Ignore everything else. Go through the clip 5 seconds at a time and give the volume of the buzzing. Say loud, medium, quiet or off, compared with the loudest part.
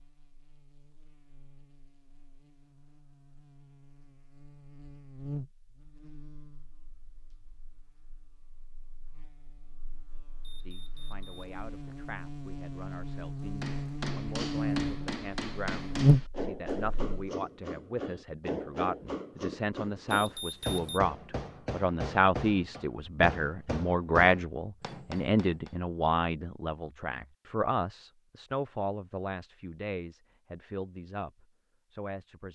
quiet, quiet, medium, loud, off, off, off.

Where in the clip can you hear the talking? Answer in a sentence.
The talking can be heard from 10.7 to 32.5 s.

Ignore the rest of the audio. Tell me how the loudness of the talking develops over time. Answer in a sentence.
The loudness of the talking goes up, then down.